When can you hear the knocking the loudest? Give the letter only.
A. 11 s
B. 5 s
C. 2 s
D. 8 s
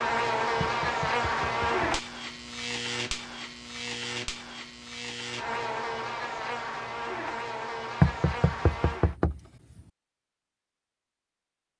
D.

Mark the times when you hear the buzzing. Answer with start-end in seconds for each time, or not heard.
0.0-9.2.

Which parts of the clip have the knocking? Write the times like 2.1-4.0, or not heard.
0.6-1.9, 8.0-9.4.